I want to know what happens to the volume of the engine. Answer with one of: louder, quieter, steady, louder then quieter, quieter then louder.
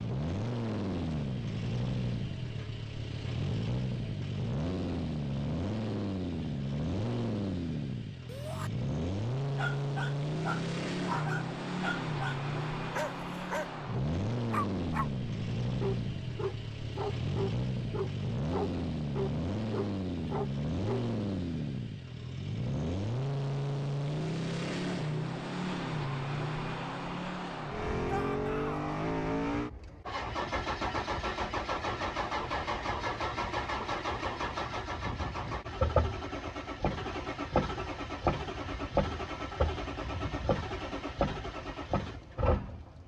steady.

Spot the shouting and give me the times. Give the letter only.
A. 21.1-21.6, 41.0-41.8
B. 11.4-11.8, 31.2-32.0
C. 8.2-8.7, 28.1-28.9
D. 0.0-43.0
C.